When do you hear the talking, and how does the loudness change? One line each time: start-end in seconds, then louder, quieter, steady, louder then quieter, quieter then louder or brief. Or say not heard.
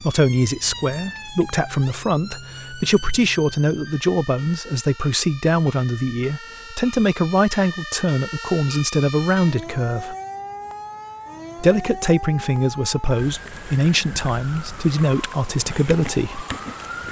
0.0-10.2 steady
11.6-16.4 steady.